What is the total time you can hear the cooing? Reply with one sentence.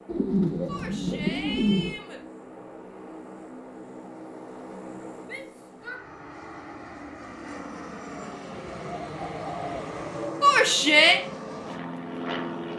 You can hear the cooing for 4 seconds altogether.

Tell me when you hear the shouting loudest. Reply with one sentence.
The loudest moment of the shouting is at 11 seconds.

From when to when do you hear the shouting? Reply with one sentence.
The shouting can be heard from 0.7 to 2.2 s, from 5.2 to 6.0 s and from 10.4 to 11.2 s.